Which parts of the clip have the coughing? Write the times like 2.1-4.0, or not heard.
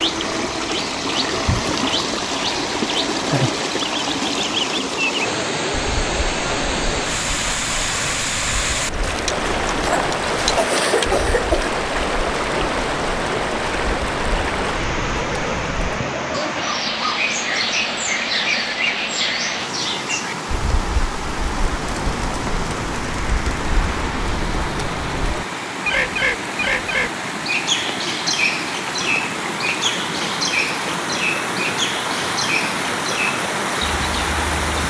9.8-11.7.